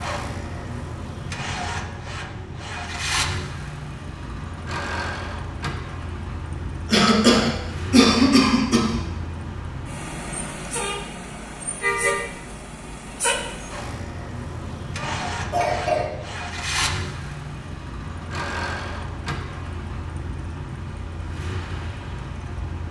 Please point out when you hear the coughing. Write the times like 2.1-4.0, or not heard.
6.8-9.0, 14.9-16.1.